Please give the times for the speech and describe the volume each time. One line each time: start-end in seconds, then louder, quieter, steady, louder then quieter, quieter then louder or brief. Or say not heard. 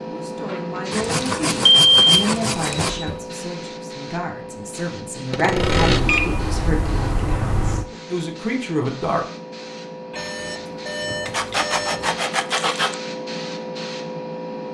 0.0-9.2 steady.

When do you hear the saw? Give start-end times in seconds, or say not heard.
0.9-2.9, 5.3-6.0, 11.2-12.9.